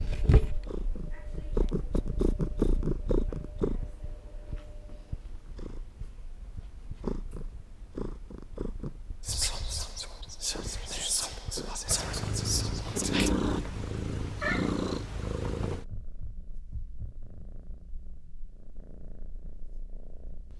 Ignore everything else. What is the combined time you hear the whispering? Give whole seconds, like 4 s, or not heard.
4 s.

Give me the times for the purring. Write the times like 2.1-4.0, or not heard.
0.0-20.5.